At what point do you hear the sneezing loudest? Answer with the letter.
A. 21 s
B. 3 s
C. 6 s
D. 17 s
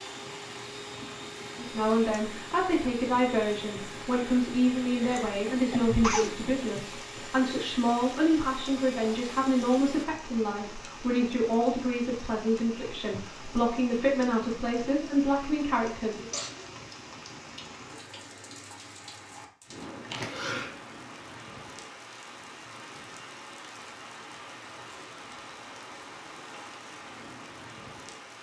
C.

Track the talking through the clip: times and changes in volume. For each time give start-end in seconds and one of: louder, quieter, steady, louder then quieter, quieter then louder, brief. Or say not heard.
1.6-16.3 steady.